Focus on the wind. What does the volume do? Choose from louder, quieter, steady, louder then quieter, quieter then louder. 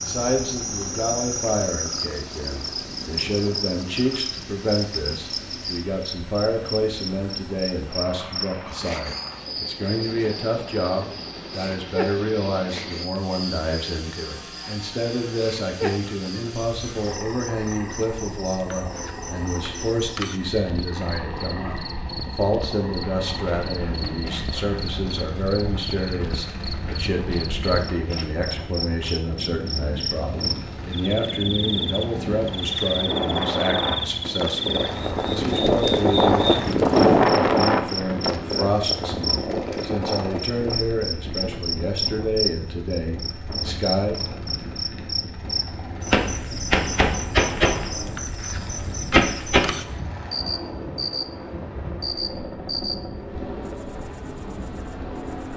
louder then quieter.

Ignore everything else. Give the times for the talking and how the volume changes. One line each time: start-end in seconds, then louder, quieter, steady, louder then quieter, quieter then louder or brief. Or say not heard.
0.0-44.2 steady.